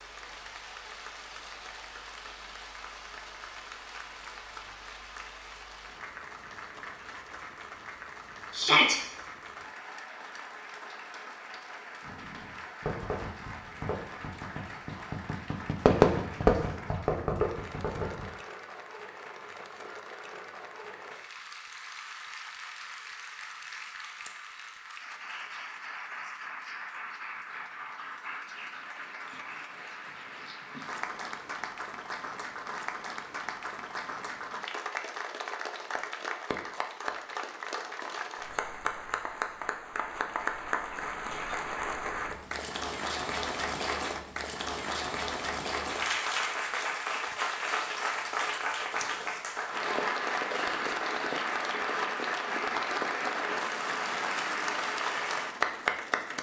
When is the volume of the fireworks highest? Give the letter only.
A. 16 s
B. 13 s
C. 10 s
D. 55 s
A.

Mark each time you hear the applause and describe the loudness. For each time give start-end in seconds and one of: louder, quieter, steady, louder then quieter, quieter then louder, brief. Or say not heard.
0.0-56.3 louder.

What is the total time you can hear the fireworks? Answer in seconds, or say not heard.
6 s.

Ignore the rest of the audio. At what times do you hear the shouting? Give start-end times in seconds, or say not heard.
8.5-8.9.